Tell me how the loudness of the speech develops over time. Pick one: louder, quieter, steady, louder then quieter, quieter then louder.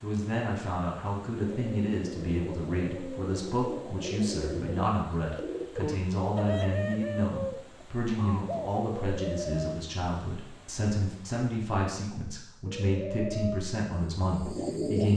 steady.